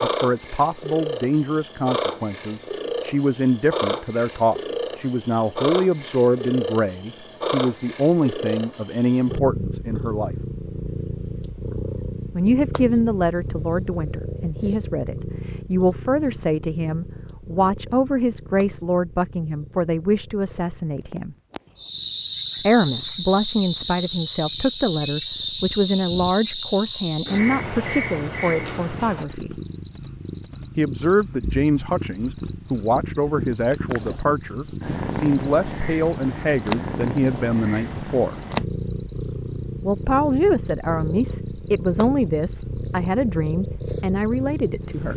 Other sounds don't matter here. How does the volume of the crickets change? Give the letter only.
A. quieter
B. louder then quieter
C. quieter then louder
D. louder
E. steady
A.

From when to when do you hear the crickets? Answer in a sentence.
You can hear the crickets from 21.8 to 45.1 s.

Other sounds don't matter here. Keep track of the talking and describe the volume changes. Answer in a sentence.
The volume of the talking stays about the same.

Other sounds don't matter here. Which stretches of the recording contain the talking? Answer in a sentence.
The talking can be heard from 0.0 to 10.3 s, from 12.3 to 21.4 s, from 22.6 to 29.6 s, from 30.8 to 38.4 s and from 39.8 to 45.1 s.